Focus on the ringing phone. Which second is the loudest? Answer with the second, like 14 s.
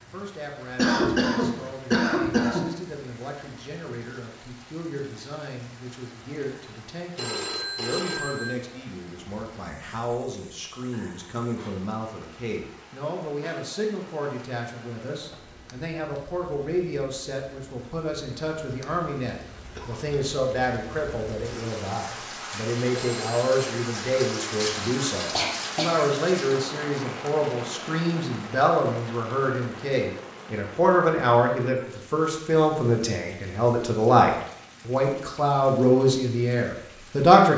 8 s.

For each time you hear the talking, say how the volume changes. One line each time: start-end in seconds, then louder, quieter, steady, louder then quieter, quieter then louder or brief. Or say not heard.
0.0-37.5 louder.